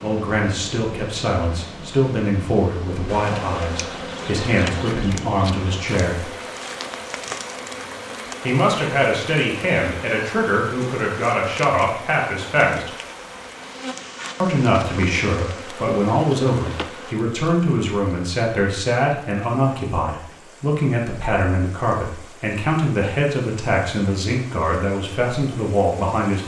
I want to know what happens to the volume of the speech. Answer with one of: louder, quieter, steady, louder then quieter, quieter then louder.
steady.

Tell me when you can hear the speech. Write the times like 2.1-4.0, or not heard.
0.0-6.2, 8.4-12.9, 14.4-26.4.